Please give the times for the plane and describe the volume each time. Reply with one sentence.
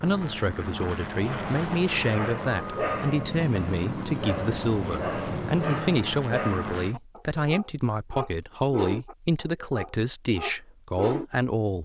You can hear the plane from 0.0 to 7.0 s, at a steady volume.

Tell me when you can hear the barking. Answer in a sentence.
The barking can be heard from 2.1 to 11.4 s.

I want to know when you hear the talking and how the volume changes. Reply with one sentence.
The talking can be heard from 0.0 to 11.7 s, at a steady volume.